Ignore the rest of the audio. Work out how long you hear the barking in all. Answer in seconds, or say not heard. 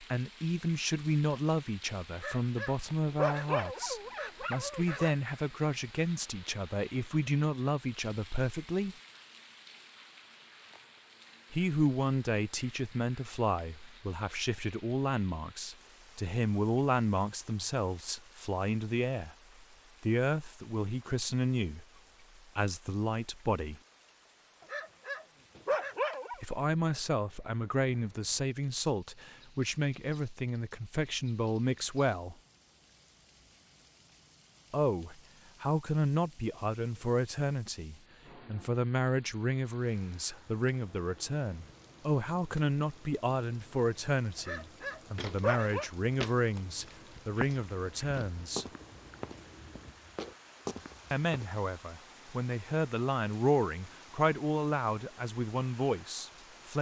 6 s.